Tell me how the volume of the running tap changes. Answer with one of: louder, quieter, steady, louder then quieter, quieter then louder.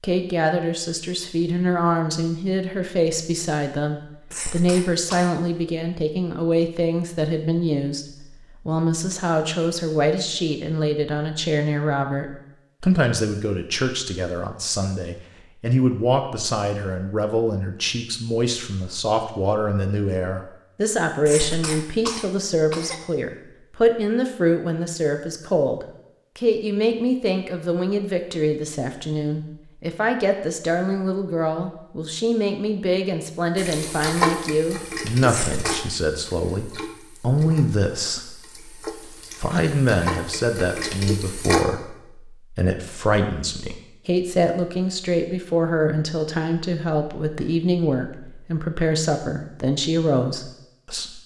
quieter then louder.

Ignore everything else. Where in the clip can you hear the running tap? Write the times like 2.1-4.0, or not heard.
33.5-41.6.